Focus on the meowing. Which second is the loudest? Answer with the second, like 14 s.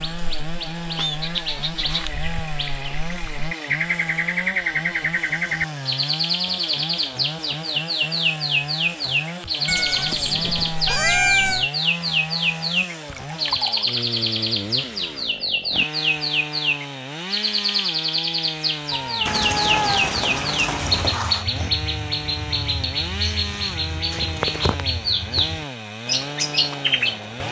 11 s.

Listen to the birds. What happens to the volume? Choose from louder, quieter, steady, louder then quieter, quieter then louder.
steady.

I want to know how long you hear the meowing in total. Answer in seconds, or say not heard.
4 s.